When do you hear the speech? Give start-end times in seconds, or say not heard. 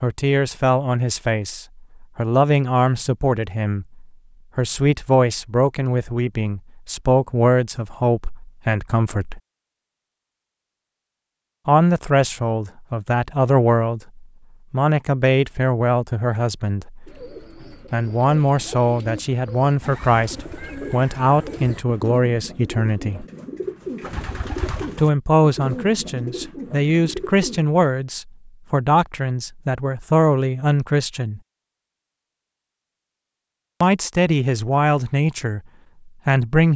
0.0-9.4, 11.7-17.1, 17.9-23.2, 24.9-31.4, 33.8-36.7.